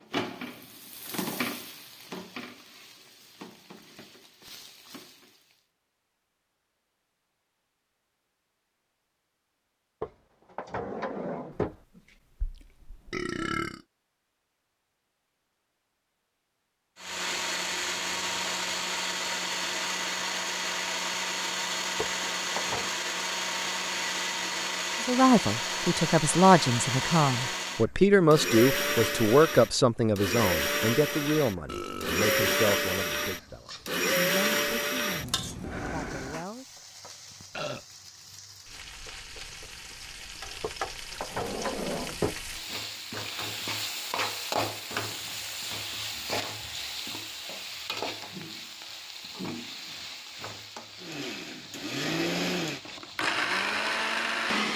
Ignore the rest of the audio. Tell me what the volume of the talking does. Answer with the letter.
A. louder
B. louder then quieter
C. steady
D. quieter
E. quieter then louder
D.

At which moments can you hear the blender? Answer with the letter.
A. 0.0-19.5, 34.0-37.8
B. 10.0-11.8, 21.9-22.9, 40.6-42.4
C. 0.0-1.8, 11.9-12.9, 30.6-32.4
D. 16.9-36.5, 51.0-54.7
D.